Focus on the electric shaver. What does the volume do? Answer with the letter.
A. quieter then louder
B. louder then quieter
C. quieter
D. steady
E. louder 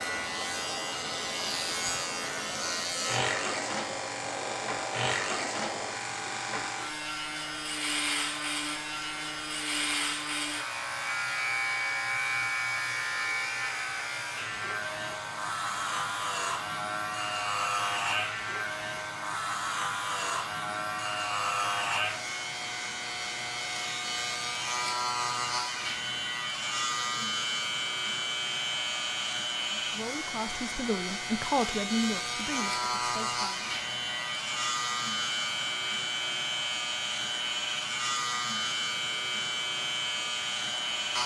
D.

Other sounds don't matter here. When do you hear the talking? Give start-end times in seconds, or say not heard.
29.8-33.7.